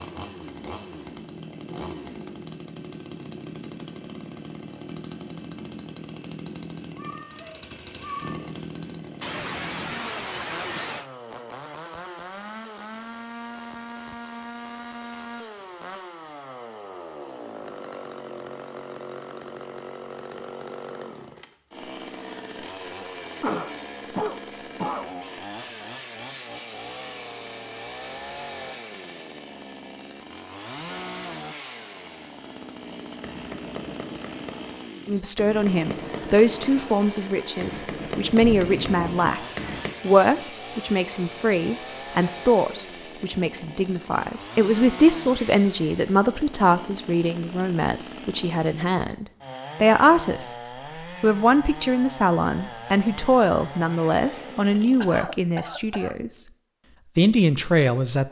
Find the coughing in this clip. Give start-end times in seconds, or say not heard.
9.2-11.1, 23.4-25.1, 55.0-56.2.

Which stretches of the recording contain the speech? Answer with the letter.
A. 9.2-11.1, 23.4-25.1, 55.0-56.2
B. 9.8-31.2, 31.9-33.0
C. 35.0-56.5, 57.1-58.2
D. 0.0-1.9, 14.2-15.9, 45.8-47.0
C.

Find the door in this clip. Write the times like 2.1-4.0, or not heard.
not heard.